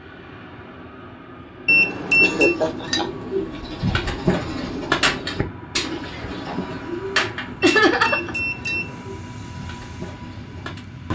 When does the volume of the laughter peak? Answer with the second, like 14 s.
8 s.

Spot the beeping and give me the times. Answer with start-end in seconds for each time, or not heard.
1.6-2.5, 7.6-9.1.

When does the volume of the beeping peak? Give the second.
2 s.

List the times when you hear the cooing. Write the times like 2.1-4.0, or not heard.
2.1-10.8.